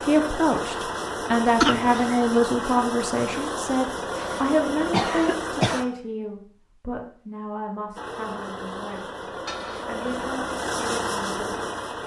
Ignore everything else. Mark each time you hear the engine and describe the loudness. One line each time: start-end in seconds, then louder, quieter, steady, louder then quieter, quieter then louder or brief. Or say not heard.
0.0-5.8 steady
8.0-12.0 louder.